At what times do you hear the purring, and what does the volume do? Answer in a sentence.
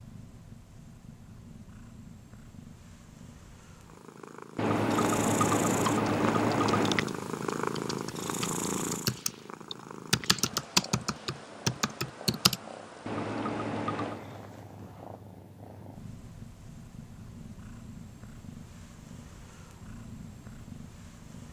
The purring can be heard from 0.0 to 21.4 s, getting louder then quieter.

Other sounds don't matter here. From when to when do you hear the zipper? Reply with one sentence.
You can't hear the zipper here.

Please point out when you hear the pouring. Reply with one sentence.
You can hear the pouring from 4.5 to 7.0 s and from 13.1 to 14.2 s.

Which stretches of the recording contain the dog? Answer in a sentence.
The dog can't be heard in this clip.